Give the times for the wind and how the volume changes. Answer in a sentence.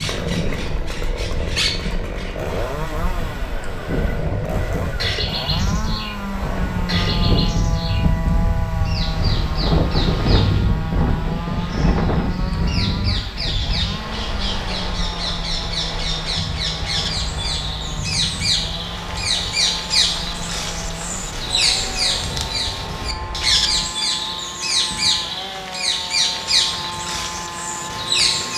You can hear the wind from 0.0 to 23.9 s, getting louder then quieter.